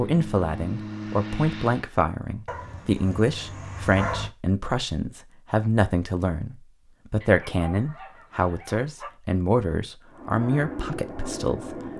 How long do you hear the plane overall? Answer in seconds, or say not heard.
4 s.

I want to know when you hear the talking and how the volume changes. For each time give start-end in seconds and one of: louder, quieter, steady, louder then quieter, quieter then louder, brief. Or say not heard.
0.0-11.9 steady.